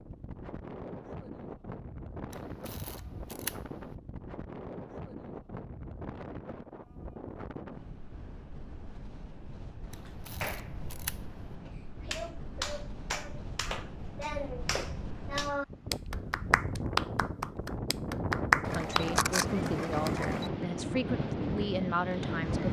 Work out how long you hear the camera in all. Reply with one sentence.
You can hear the camera for 5 seconds altogether.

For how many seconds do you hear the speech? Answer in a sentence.
The speech can be heard for 4 seconds in total.